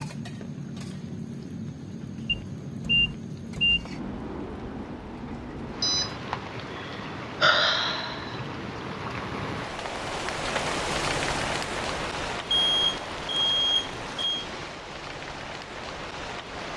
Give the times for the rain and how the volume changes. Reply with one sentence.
You can hear the rain from 0.0 to 16.7 s, getting louder then quieter.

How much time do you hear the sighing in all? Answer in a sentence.
You can hear the sighing for 2 seconds altogether.